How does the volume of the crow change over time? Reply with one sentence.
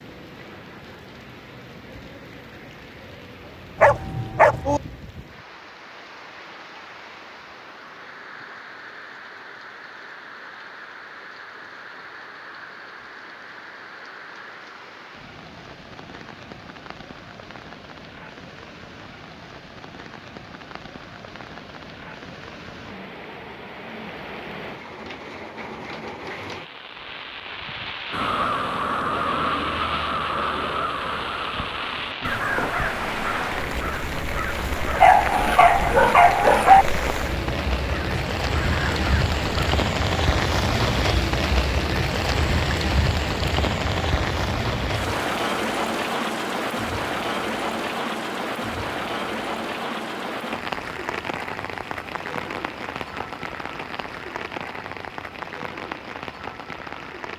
The volume of the crow goes down.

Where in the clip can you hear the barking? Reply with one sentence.
The barking can be heard from 3.8 to 4.8 s and from 35.0 to 36.9 s.